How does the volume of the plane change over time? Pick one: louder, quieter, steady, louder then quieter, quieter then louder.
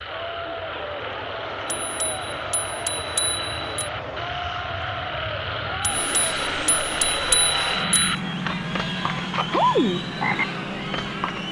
louder.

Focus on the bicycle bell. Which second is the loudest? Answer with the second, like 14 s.
7 s.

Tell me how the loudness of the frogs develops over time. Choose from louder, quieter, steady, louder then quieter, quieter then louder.
louder.